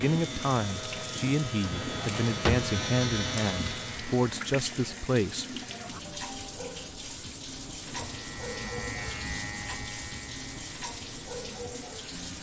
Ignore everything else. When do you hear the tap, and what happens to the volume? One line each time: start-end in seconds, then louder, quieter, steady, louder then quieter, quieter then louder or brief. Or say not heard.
0.0-12.3 steady.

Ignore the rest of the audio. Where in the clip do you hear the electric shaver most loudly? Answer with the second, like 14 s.
3 s.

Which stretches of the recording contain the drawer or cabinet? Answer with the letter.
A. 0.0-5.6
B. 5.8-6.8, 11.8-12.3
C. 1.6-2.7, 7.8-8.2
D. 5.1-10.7
C.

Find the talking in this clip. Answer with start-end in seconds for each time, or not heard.
0.0-5.6.